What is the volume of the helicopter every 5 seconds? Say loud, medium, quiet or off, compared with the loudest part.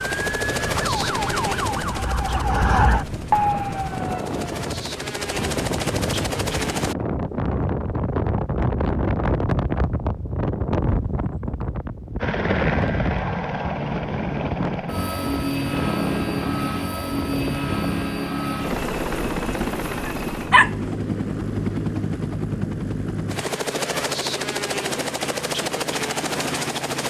medium, loud, loud, loud, loud, loud.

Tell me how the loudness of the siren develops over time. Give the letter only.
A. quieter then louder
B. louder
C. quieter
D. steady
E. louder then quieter
B.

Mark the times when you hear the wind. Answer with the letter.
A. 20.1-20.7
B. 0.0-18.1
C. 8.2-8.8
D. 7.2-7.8
B.